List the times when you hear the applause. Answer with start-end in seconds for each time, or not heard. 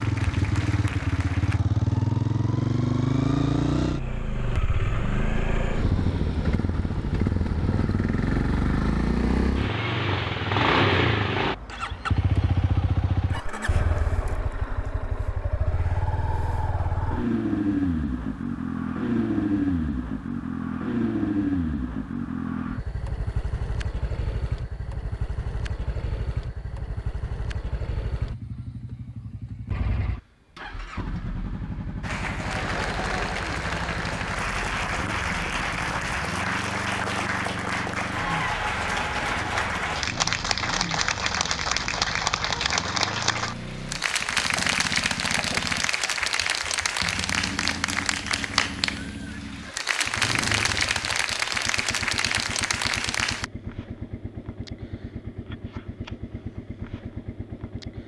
0.0-1.6, 32.0-53.5.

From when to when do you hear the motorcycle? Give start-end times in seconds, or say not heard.
0.0-58.0.